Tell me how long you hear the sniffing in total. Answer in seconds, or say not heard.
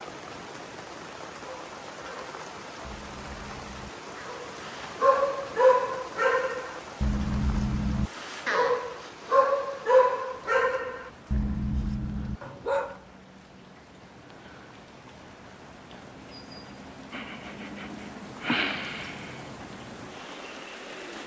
4 s.